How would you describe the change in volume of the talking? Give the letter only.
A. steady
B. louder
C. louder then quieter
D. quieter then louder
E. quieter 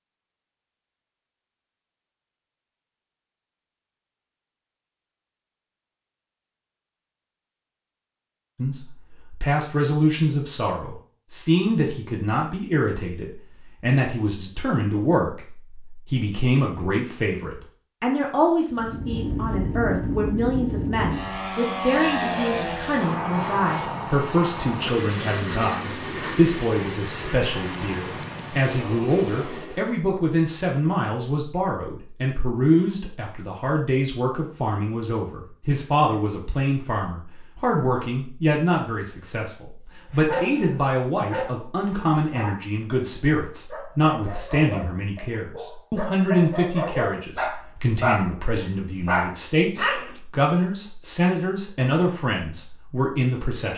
A.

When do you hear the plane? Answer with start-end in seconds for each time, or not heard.
18.7-30.1.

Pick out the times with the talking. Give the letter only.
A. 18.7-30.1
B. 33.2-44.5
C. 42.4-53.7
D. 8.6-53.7
D.